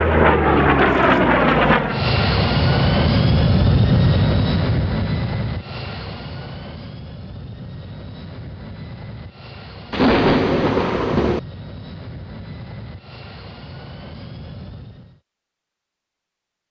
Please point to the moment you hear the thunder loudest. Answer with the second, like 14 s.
10 s.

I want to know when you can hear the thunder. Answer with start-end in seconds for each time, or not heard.
9.9-11.4.